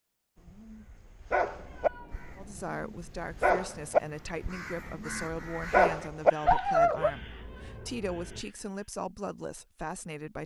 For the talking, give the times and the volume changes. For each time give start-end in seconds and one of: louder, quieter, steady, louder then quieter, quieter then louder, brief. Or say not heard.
2.4-10.4 steady.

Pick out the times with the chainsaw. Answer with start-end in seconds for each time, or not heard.
not heard.